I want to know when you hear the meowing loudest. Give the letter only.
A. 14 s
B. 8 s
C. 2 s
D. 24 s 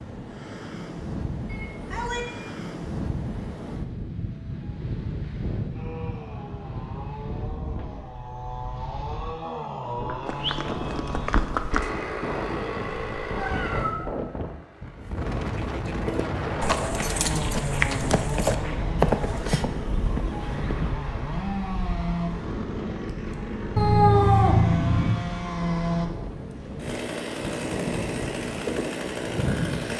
D.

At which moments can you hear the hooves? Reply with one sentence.
You can hear the hooves from 9.8 to 12.0 s and from 16.1 to 20.9 s.